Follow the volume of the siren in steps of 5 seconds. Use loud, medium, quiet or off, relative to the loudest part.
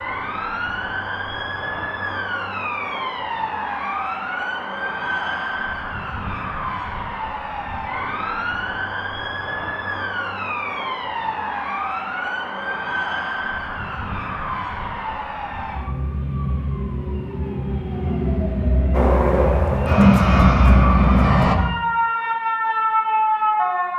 medium, medium, medium, medium, loud.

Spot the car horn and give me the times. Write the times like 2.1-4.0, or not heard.
not heard.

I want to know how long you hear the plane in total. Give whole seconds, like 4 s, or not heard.
3 s.